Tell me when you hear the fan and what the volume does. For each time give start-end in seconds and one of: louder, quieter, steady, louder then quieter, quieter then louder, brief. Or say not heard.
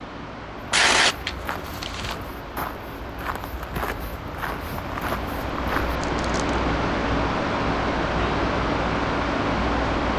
0.0-10.1 louder.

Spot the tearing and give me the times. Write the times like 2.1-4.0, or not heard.
0.7-2.2, 6.0-6.4.